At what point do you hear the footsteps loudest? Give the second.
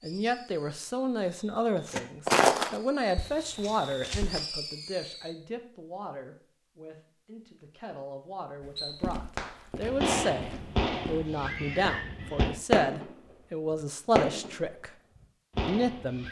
2 s.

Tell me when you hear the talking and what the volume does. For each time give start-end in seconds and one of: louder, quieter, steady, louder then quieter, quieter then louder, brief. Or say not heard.
0.0-14.9 quieter then louder
15.7-16.2 brief.